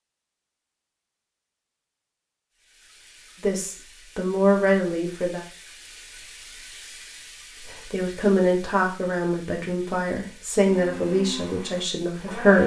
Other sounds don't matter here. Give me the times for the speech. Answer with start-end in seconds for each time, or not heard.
3.4-5.4, 7.9-12.6.